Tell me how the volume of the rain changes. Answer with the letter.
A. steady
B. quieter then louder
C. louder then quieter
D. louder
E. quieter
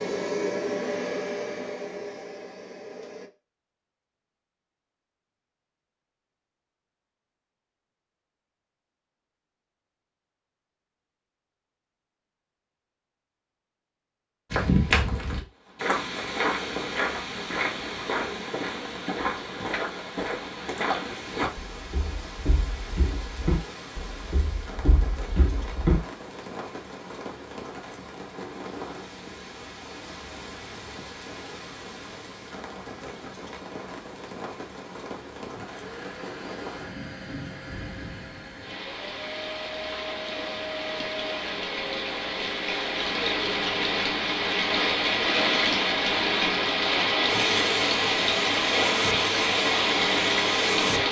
D.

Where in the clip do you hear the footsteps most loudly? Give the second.
15 s.